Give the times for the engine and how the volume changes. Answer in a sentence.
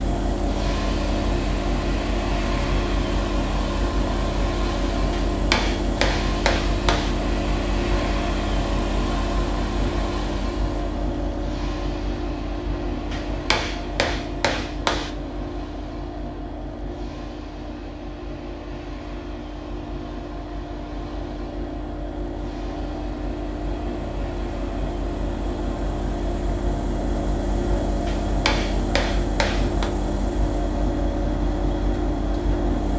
You can hear the engine from 0.0 to 32.9 s, getting quieter then louder.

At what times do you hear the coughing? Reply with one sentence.
The coughing can't be heard in this clip.